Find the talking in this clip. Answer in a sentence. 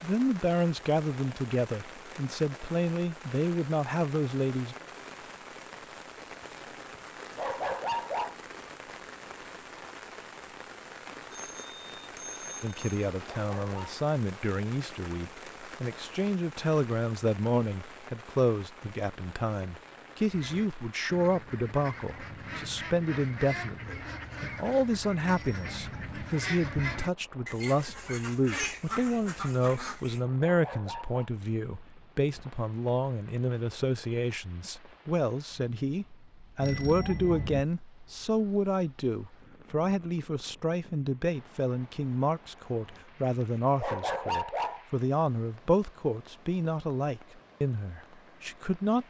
You can hear the talking from 0.0 to 4.8 s and from 12.6 to 49.0 s.